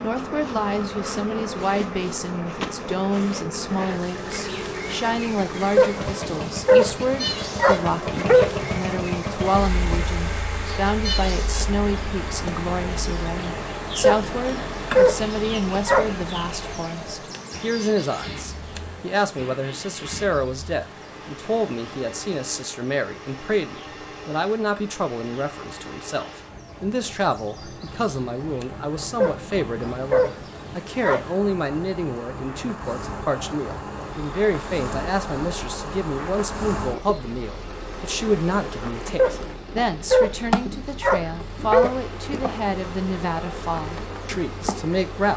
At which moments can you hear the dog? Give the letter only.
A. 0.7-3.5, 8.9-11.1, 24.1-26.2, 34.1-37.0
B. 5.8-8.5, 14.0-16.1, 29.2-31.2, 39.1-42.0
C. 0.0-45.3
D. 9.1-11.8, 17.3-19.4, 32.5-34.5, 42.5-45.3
B.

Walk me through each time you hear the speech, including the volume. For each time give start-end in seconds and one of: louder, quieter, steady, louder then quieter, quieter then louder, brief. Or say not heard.
0.0-45.3 steady.